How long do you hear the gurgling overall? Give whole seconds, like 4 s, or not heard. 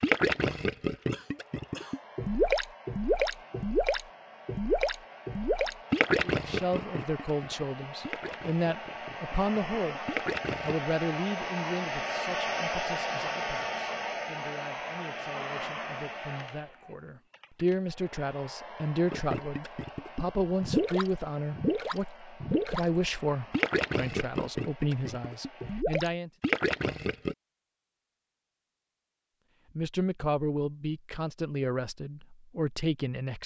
18 s.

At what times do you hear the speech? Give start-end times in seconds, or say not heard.
6.2-26.3, 29.8-33.4.